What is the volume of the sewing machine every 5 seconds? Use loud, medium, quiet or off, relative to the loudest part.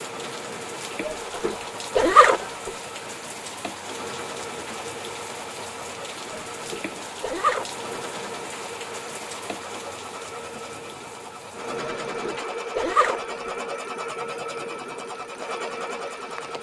medium, medium, loud, loud.